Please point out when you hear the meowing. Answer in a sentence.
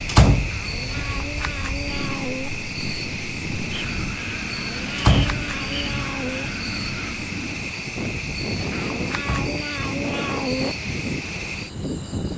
You can hear the meowing from 0.5 to 2.5 s, from 4.5 to 6.5 s and from 8.7 to 10.7 s.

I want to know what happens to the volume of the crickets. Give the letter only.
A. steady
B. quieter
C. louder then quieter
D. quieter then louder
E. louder
A.